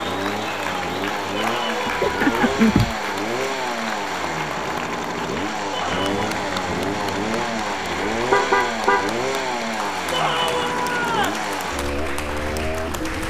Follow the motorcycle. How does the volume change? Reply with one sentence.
The loudness of the motorcycle stays about the same.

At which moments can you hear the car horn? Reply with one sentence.
You can hear the car horn from 1.9 to 3.0 s and from 8.1 to 9.2 s.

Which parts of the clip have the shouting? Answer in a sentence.
The shouting can be heard from 1.3 to 2.6 s, from 5.7 to 6.3 s and from 10.1 to 11.4 s.